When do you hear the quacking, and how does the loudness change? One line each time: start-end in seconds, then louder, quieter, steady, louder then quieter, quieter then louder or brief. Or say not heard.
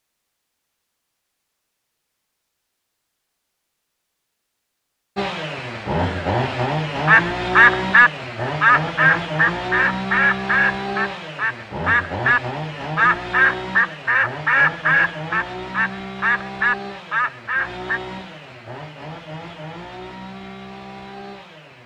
7.0-18.0 quieter.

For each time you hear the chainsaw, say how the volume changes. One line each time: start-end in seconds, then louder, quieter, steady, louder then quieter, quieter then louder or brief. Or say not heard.
5.2-21.8 quieter.